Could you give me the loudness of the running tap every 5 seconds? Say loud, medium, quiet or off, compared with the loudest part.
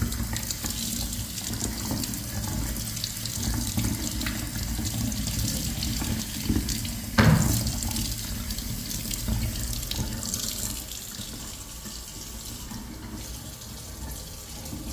loud, loud, medium.